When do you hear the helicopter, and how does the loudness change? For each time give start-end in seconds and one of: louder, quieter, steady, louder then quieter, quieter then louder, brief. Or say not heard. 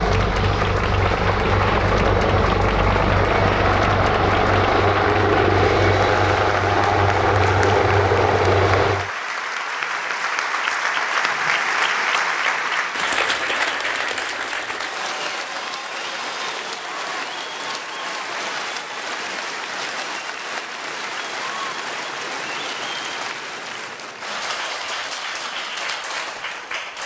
0.0-9.1 steady.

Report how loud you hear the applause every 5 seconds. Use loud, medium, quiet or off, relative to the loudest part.
medium, medium, loud, medium, medium, medium.